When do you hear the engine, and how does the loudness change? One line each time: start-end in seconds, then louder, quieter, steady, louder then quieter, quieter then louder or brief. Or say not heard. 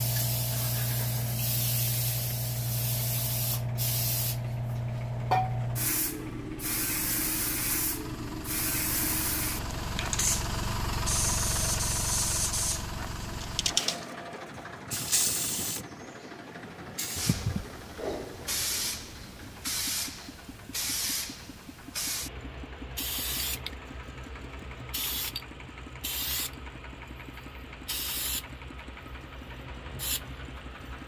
0.4-31.0 louder then quieter.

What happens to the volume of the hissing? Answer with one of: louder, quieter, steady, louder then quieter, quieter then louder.
quieter.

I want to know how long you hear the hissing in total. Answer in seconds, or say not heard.
31 s.